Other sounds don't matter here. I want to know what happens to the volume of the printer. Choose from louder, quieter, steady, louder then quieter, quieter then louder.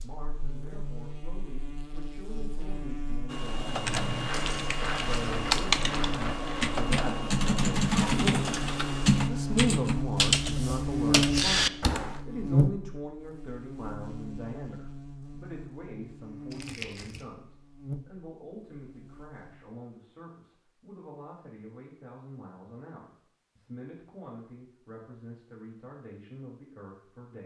steady.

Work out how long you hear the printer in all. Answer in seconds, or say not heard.
6 s.